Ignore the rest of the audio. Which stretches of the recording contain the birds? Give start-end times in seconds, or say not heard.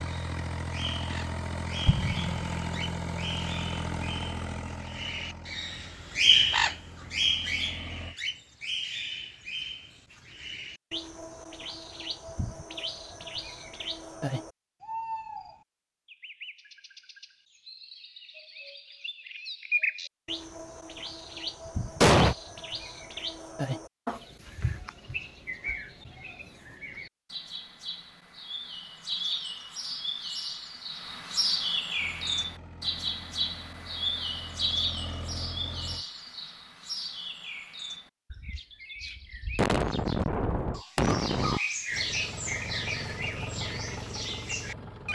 0.0-45.1.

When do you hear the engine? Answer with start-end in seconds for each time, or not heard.
0.0-8.2, 31.9-36.0, 41.9-45.1.